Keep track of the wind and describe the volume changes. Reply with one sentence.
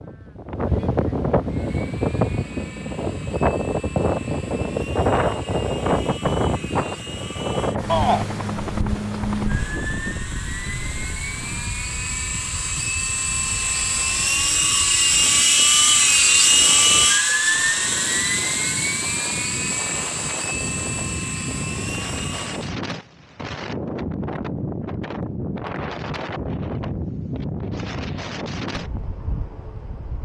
The volume of the wind goes down, then up.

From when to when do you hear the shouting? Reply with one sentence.
The shouting can be heard from 7.8 to 8.2 s.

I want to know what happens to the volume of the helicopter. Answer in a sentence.
The loudness of the helicopter goes up, then down.